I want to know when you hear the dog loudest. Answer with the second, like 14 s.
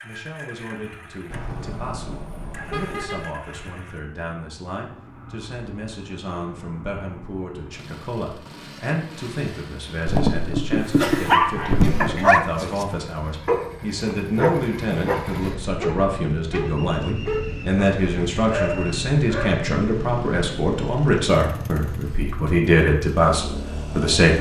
11 s.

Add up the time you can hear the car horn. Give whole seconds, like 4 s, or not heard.
2 s.